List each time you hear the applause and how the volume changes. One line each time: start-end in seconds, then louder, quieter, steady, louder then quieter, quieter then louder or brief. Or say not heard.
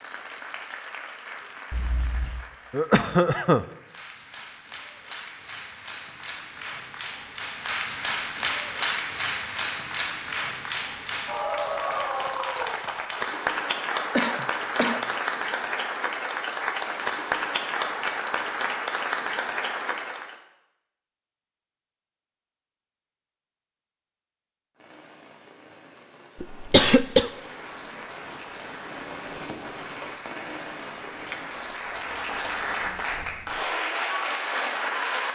0.0-20.4 louder
27.2-35.3 louder.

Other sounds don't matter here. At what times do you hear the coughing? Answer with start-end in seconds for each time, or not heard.
2.7-3.6, 14.2-15.2, 26.4-27.3.